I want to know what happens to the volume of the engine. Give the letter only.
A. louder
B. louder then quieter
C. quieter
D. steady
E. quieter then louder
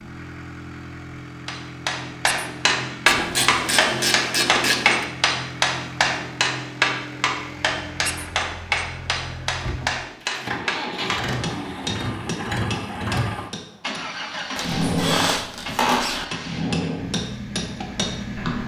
A.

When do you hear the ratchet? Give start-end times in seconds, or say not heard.
3.0-5.0.